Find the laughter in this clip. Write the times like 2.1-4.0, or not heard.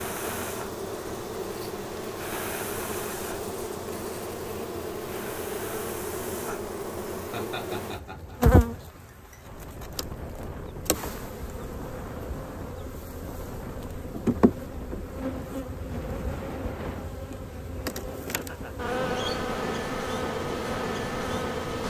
7.2-8.4, 18.3-18.9.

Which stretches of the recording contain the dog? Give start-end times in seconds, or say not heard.
not heard.